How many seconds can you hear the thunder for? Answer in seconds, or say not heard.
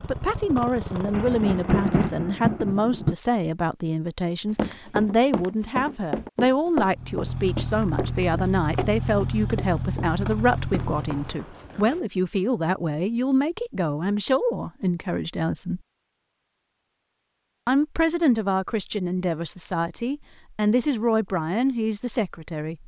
2 s.